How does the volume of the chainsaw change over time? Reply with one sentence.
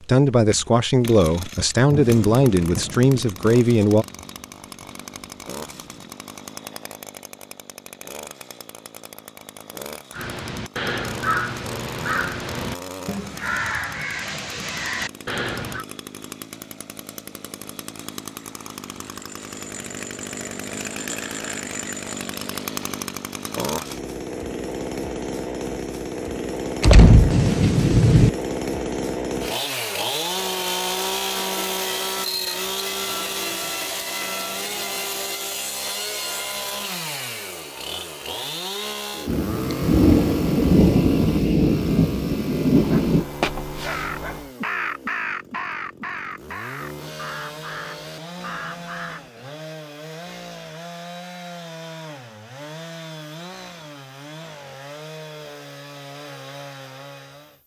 The loudness of the chainsaw goes up, then down.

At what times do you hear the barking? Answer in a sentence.
The barking can be heard from 42.8 to 44.5 s.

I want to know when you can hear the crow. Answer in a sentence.
You can hear the crow from 10.1 to 15.8 s and from 43.8 to 49.3 s.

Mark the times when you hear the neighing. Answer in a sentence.
The neighing can't be heard in this clip.